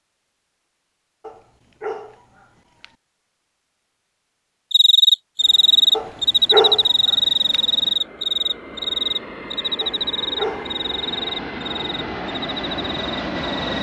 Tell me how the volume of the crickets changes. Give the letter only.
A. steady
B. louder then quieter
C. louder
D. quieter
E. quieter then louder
D.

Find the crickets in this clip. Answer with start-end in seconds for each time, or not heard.
4.7-13.7.